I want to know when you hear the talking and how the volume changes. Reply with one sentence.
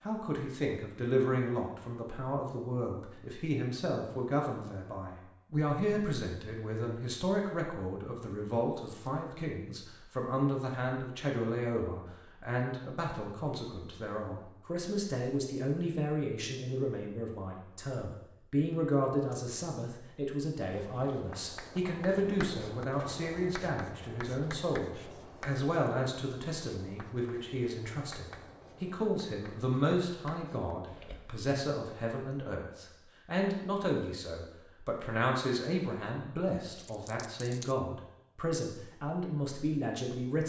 The talking can be heard from 0.0 to 40.4 s, at a steady volume.